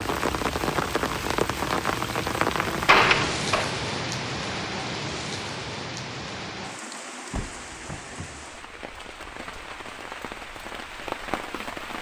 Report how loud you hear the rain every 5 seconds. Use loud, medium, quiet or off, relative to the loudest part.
loud, medium, medium.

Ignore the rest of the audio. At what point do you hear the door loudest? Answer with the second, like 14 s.
3 s.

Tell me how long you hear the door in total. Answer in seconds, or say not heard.
2 s.